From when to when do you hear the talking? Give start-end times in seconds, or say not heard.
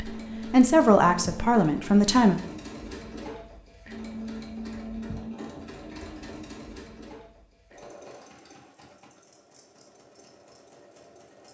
0.0-2.4.